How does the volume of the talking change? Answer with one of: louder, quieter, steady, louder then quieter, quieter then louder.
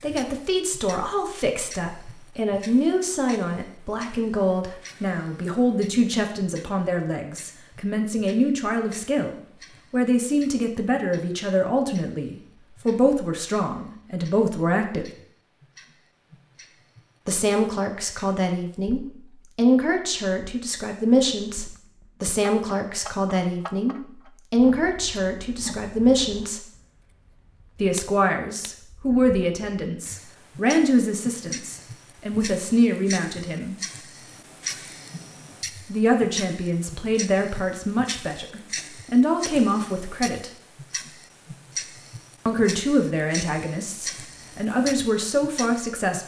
steady.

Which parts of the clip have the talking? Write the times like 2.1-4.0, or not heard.
0.0-15.1, 17.2-26.6, 27.8-33.8, 35.9-40.5, 42.5-46.2.